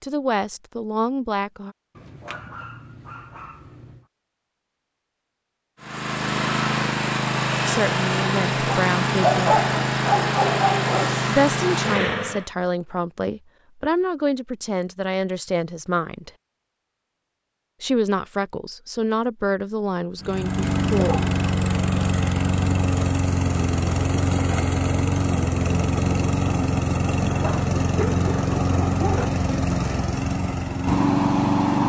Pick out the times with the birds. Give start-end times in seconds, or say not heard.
not heard.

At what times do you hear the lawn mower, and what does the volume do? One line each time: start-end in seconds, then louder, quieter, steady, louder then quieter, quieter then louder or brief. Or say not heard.
5.8-12.5 steady
20.2-31.8 steady.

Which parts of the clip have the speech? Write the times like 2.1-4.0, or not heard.
0.0-1.8, 7.7-9.6, 11.2-16.3, 17.8-21.1.